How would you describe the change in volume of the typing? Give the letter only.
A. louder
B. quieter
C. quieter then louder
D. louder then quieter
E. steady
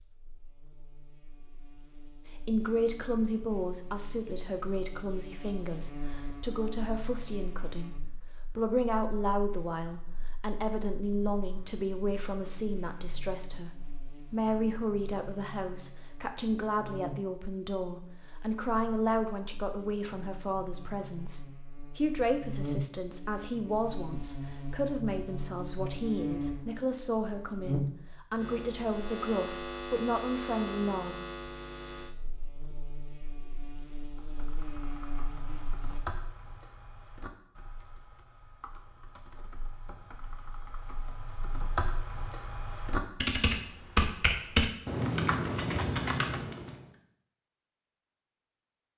C.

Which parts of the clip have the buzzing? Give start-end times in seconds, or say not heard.
0.0-36.0.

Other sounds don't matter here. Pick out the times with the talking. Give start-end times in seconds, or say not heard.
2.3-31.1.